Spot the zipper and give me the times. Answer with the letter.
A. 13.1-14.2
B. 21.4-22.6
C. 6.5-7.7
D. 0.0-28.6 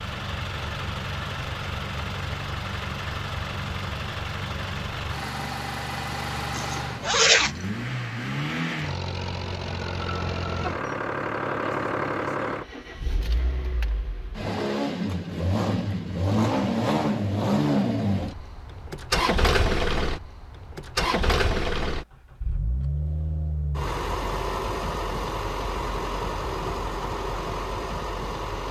C.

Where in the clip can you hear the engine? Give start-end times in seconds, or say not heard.
0.0-28.6.